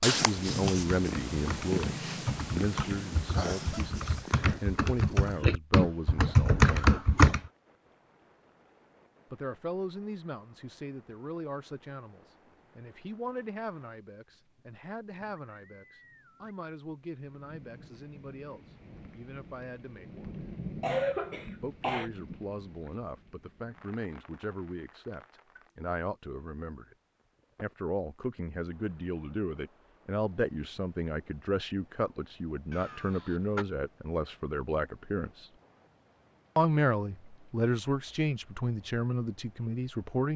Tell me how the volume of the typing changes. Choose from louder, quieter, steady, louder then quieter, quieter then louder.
louder.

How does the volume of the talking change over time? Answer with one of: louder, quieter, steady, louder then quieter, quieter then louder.
quieter then louder.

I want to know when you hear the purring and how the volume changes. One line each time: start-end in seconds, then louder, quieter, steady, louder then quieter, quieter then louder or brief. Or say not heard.
0.0-5.5 quieter.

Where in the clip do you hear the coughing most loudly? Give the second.
21 s.